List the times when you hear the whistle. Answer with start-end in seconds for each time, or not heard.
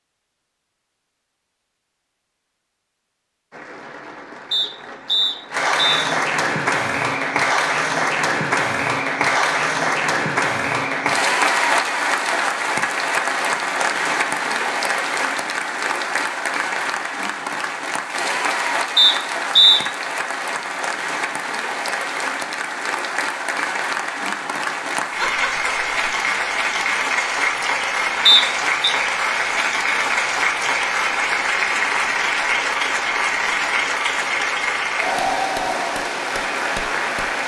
4.5-6.1, 18.9-19.8, 28.2-28.9.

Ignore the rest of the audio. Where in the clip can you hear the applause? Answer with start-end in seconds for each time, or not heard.
3.5-37.4.